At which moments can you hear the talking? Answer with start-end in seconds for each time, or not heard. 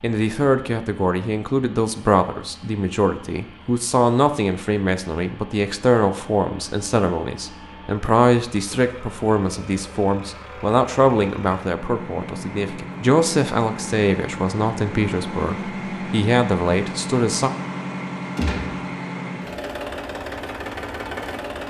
0.0-17.5.